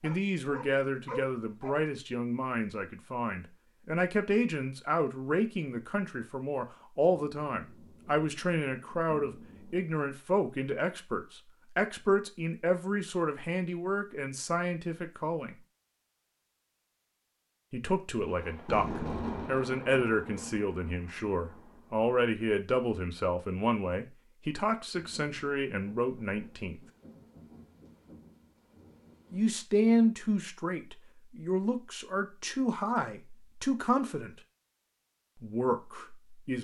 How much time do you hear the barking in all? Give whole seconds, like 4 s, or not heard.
2 s.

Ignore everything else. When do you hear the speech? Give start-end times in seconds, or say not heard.
0.0-15.6, 17.7-26.8, 29.3-34.4, 35.4-36.5.